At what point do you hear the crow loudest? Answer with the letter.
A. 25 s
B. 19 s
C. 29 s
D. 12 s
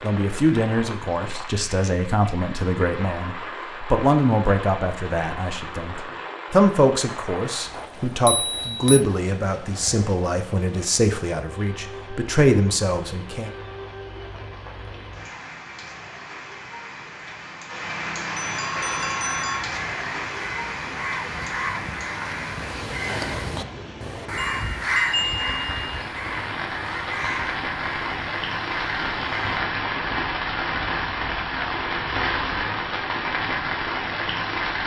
A.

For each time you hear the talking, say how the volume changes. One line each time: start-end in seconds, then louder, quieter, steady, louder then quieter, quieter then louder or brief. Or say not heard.
0.0-13.5 steady.